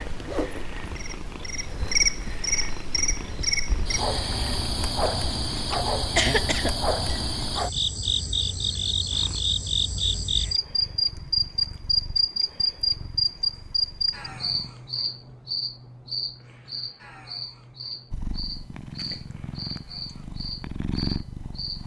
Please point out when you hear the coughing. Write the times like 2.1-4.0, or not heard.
5.7-7.5.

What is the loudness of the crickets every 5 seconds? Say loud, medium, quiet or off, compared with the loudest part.
loud, loud, loud, medium, quiet.